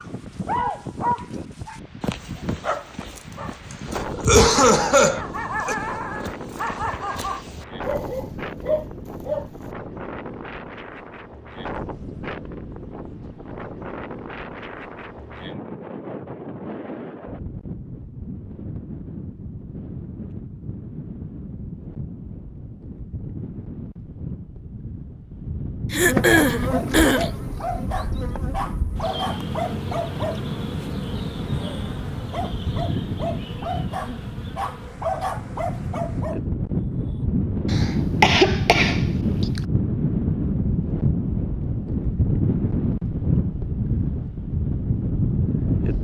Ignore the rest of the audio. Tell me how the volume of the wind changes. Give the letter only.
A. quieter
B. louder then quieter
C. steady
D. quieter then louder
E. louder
E.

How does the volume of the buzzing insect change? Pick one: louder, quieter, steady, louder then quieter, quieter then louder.
quieter.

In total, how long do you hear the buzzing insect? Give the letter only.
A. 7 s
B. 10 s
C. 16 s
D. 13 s
B.